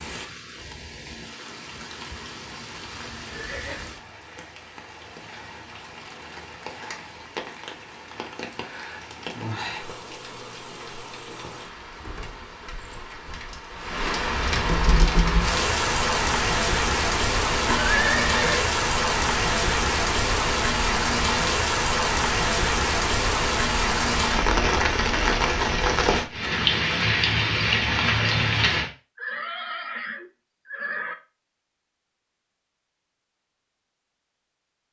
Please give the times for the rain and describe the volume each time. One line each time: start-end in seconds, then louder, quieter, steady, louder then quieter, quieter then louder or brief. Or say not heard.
0.0-28.9 louder.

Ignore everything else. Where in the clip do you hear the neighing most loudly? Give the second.
18 s.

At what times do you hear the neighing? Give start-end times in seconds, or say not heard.
3.3-3.9, 17.6-18.6, 29.1-31.1.